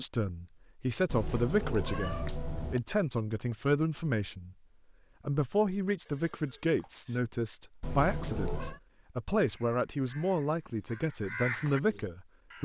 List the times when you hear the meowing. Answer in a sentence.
You can hear the meowing from 1.1 to 2.8 s and from 7.8 to 8.8 s.